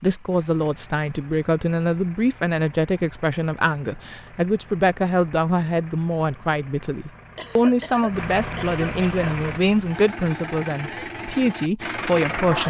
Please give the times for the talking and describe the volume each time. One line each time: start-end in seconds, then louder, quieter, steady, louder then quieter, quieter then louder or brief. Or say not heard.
0.0-12.6 steady.